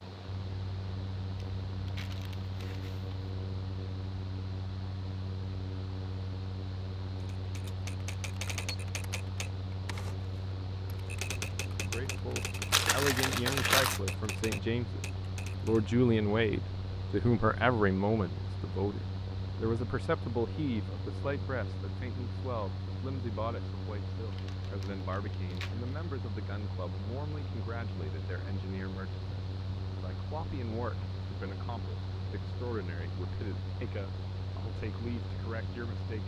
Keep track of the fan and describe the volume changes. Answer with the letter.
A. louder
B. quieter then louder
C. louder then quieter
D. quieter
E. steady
E.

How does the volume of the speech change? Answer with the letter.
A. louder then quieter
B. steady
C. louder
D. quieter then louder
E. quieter
E.